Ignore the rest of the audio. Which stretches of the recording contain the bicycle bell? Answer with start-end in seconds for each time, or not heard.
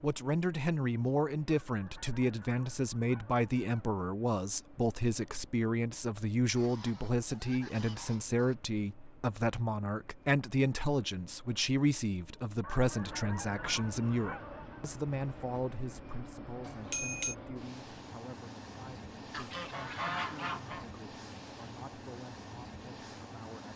16.6-17.4.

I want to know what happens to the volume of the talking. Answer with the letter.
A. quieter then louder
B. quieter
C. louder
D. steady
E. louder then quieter
B.